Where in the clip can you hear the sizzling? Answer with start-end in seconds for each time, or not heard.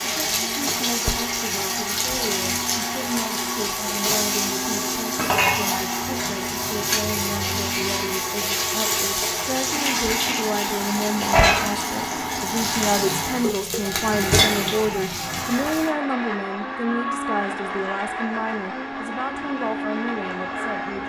0.0-15.9.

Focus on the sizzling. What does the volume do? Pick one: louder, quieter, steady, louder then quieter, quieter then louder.
steady.